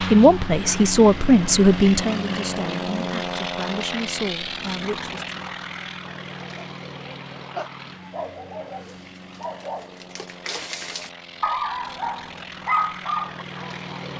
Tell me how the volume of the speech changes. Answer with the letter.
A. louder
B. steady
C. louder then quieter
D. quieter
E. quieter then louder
D.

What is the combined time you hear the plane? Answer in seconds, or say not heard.
14 s.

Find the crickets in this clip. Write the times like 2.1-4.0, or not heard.
not heard.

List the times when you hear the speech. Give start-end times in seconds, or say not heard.
0.0-5.3.